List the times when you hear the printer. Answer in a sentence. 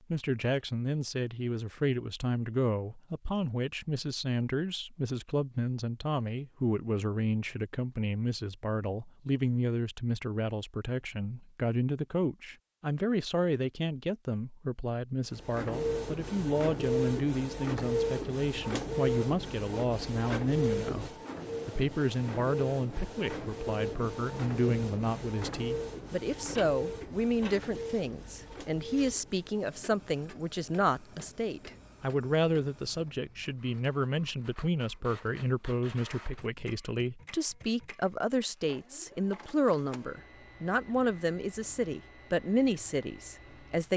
The printer can be heard from 15.3 to 43.9 s.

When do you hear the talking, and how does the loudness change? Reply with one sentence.
You can hear the talking from 0.1 to 43.9 s, at a steady volume.